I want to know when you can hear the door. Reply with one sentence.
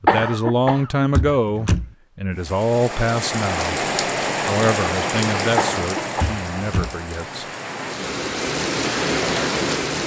You can hear the door from 1.1 to 1.9 s and from 6.2 to 7.0 s.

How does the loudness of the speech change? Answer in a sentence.
The volume of the speech goes down.